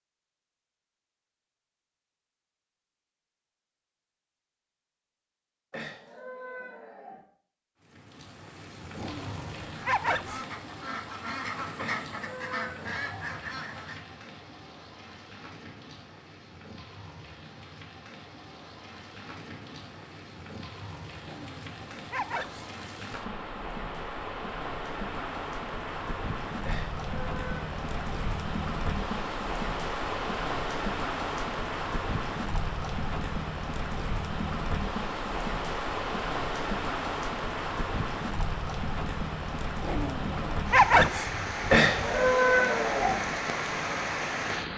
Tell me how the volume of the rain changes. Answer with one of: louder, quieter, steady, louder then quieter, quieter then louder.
louder.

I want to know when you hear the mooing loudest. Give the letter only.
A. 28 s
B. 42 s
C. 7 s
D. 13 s
B.